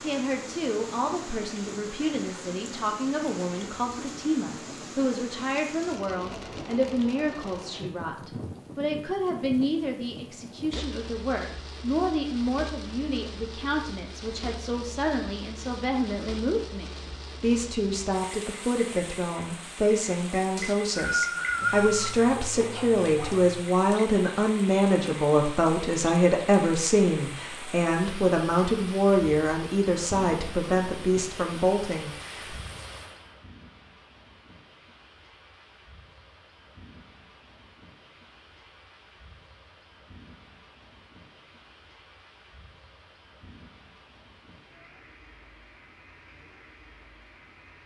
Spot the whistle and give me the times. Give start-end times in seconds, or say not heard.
20.6-22.1.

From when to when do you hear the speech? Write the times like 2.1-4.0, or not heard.
0.0-32.5.